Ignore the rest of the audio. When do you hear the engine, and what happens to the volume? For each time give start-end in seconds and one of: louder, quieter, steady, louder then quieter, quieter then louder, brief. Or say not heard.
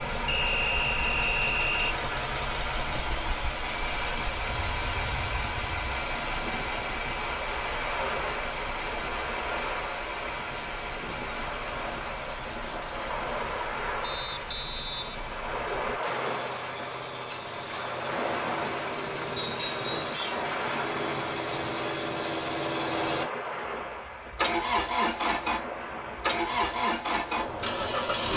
0.0-28.3 quieter then louder.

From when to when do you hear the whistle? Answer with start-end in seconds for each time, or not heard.
0.2-1.9, 14.0-15.4, 19.4-20.2.